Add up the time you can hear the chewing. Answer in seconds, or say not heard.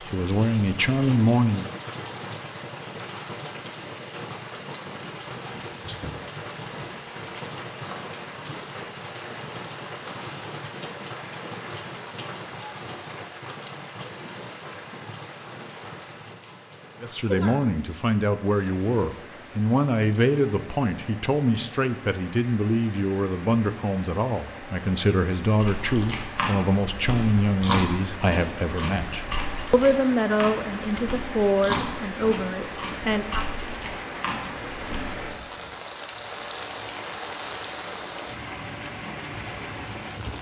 10 s.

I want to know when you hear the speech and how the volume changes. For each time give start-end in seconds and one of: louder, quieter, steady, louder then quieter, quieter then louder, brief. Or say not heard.
0.0-1.7 brief
17.0-33.5 steady.